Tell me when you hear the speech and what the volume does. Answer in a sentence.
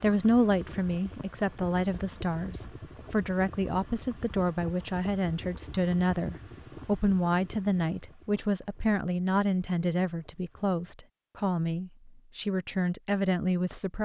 The speech can be heard from 0.0 to 13.9 s, at a steady volume.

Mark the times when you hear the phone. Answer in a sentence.
The phone can't be heard in this clip.